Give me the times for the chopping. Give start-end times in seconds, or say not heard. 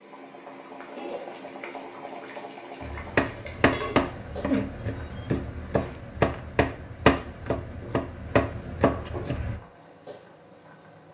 2.8-9.6.